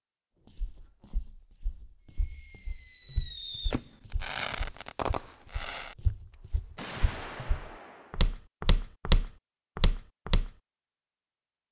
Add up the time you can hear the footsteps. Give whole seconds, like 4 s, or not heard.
10 s.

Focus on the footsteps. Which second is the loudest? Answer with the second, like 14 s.
9 s.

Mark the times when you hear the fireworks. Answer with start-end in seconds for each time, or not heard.
2.0-8.3.